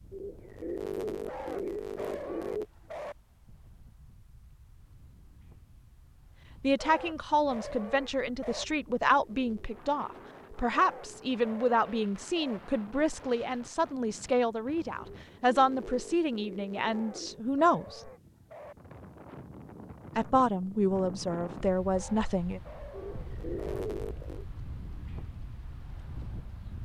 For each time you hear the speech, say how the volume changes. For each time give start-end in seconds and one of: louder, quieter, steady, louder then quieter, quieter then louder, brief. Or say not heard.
6.6-18.1 steady
20.1-22.6 brief.